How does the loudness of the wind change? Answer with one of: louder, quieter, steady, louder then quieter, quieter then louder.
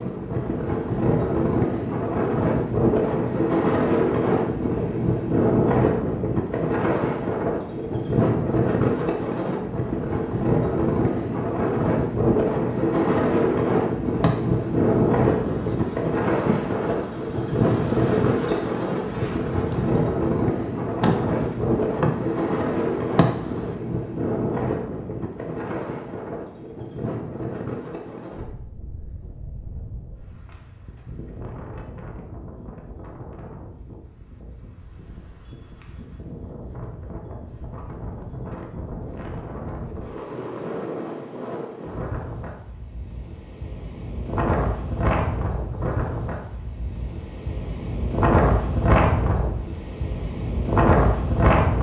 quieter then louder.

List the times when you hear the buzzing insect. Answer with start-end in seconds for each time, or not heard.
14.1-23.8.